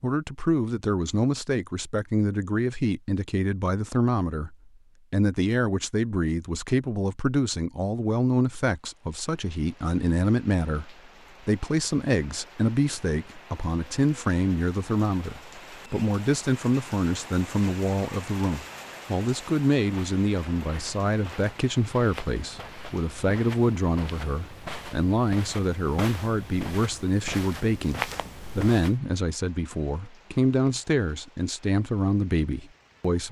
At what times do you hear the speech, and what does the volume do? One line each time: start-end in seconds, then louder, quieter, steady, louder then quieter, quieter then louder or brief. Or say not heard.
0.0-33.2 steady.